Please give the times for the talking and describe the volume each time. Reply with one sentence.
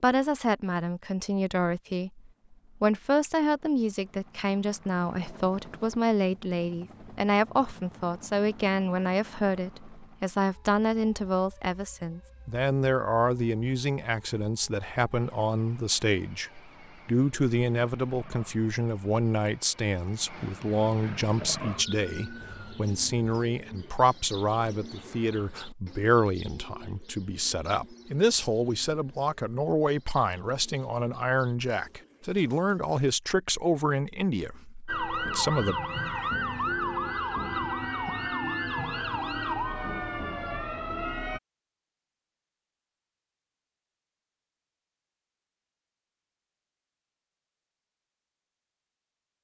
The talking can be heard from 0.0 to 35.8 s, at a steady volume.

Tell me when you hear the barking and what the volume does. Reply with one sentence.
The barking can't be heard in this clip.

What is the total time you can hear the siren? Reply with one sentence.
You can hear the siren for 19 seconds altogether.